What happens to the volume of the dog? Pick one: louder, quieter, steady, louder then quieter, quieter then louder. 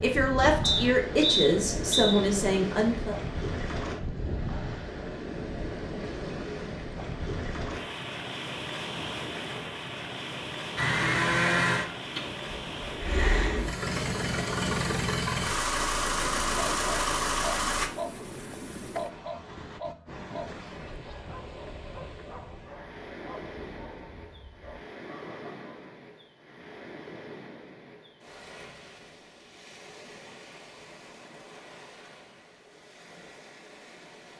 quieter.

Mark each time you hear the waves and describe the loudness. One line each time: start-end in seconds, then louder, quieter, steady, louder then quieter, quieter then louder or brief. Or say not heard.
0.0-34.3 quieter.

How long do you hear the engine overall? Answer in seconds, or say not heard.
7 s.